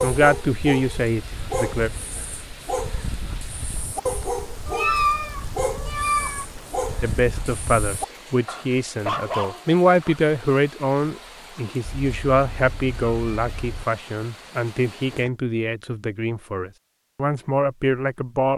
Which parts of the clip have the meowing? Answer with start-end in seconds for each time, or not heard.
4.7-6.5, 11.8-13.8.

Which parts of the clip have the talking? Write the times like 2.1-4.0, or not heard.
0.0-1.9, 7.0-18.5.